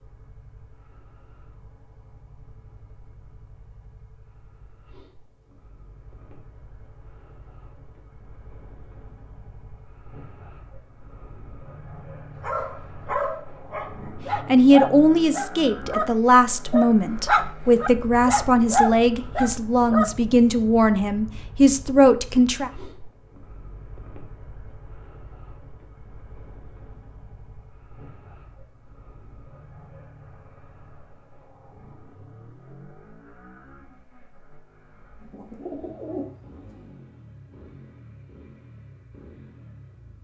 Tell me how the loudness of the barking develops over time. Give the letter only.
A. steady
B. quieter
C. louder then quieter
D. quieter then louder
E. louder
E.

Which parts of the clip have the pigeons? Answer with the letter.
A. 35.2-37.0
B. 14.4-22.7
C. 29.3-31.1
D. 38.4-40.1
A.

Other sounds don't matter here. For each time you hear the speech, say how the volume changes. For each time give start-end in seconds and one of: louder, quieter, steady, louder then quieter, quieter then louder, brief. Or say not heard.
14.4-22.7 steady.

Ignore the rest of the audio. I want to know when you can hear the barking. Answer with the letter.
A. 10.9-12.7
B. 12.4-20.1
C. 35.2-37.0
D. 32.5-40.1
B.